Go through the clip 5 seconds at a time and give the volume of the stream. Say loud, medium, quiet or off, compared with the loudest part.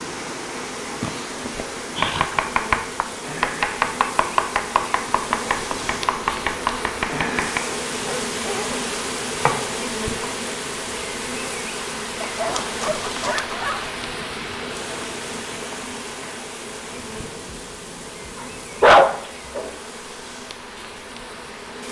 loud, loud, loud, medium, medium.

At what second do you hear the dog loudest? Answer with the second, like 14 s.
19 s.